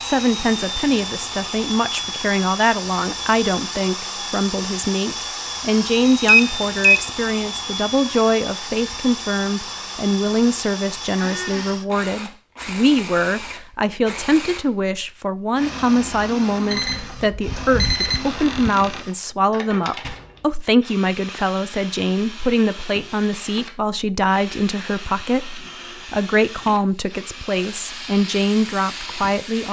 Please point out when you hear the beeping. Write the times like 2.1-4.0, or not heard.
6.2-7.0, 16.7-18.7.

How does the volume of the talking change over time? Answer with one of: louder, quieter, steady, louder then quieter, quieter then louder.
steady.